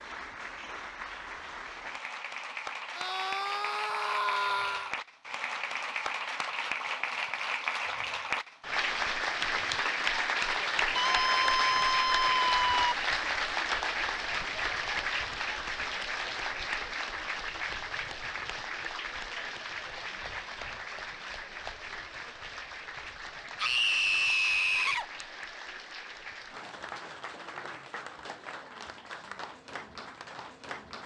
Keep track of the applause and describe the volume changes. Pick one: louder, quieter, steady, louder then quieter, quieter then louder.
louder then quieter.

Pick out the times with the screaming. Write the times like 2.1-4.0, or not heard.
3.0-5.0, 10.9-12.9, 23.6-25.1.